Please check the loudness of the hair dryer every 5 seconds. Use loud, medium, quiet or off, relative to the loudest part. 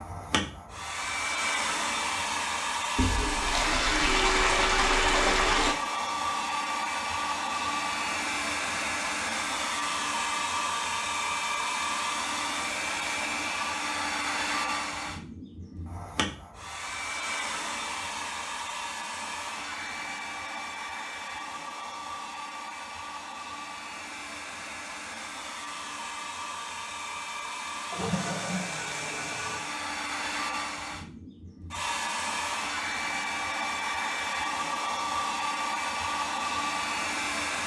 loud, loud, loud, medium, medium, medium, loud, loud.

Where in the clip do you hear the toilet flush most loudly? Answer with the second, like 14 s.
5 s.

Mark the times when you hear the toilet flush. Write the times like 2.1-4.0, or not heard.
3.0-5.8, 27.9-29.8.